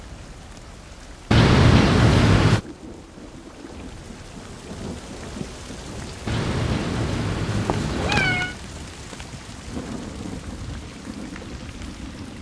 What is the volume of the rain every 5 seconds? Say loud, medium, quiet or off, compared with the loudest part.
medium, loud, loud.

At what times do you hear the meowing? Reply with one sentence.
The meowing can be heard from 1.3 to 2.6 s and from 6.2 to 8.6 s.